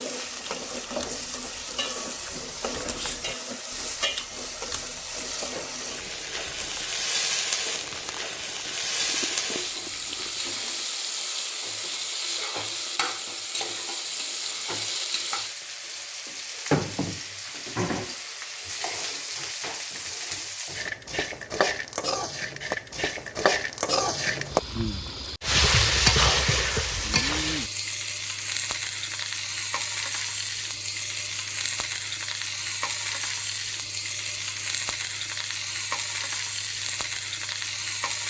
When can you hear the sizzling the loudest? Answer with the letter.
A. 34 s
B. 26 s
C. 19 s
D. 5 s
B.